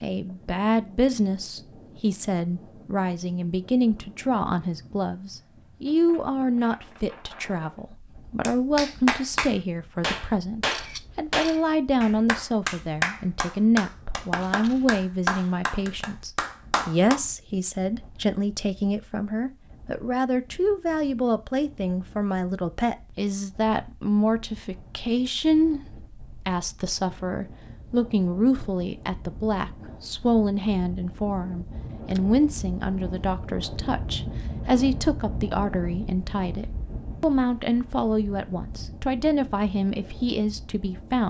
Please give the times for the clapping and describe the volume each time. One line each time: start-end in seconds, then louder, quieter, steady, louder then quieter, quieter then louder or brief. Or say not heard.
8.4-17.2 steady.